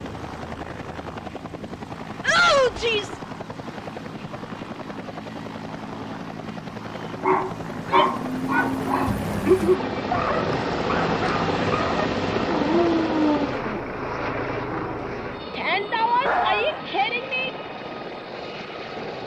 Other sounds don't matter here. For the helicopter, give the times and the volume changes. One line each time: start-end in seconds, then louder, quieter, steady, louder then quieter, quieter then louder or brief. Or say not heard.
0.0-19.2 louder then quieter.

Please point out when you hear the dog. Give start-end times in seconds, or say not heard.
7.2-16.8.